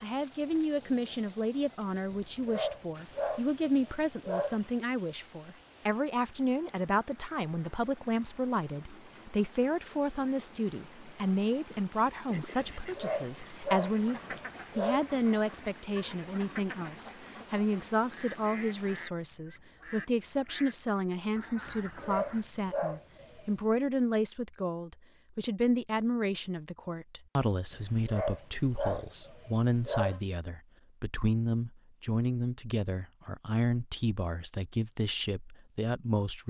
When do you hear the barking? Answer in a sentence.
You can hear the barking from 2.1 to 4.7 s, from 12.7 to 15.2 s, from 21.6 to 23.6 s and from 27.7 to 30.2 s.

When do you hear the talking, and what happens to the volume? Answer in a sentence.
The talking can be heard from 0.0 to 36.4 s, at a steady volume.